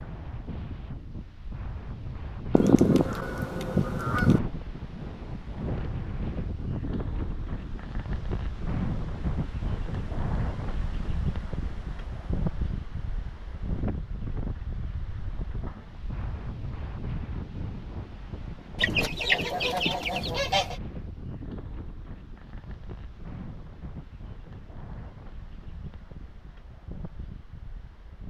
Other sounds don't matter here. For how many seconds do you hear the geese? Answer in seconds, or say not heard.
4 s.